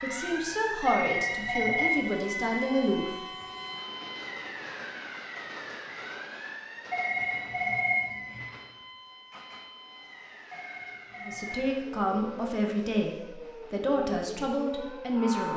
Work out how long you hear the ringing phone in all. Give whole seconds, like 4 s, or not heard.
4 s.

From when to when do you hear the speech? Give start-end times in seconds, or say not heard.
0.0-3.1, 11.2-15.5.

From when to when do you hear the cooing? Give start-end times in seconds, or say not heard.
not heard.